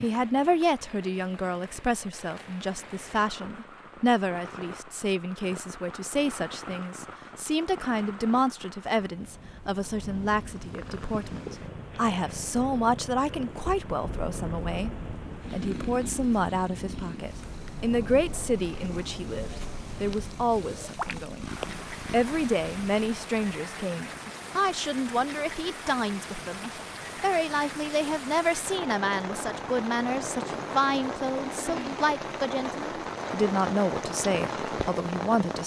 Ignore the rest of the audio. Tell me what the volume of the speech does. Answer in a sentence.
The volume of the speech stays about the same.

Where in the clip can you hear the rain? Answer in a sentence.
You can hear the rain from 0.0 to 35.6 s.